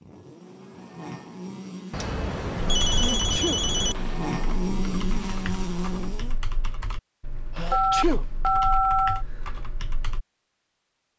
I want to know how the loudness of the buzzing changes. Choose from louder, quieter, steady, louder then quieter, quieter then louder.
louder.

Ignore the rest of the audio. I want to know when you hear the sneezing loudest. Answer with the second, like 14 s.
8 s.